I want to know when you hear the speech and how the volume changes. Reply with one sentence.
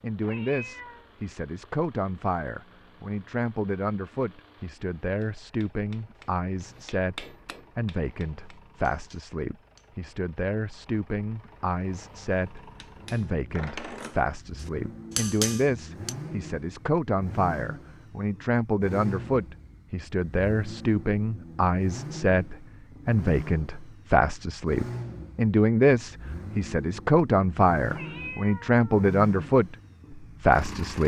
The speech can be heard from 0.0 to 31.0 s, getting louder.